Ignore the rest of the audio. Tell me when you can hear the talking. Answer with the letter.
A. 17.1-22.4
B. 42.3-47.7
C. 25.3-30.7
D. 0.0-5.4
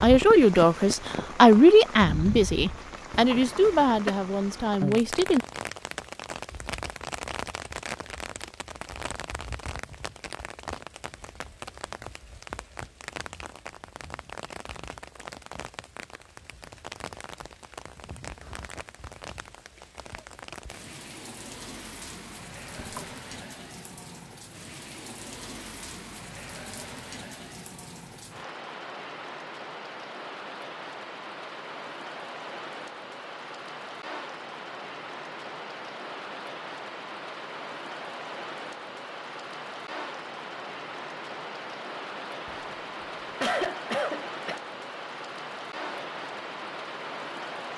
D.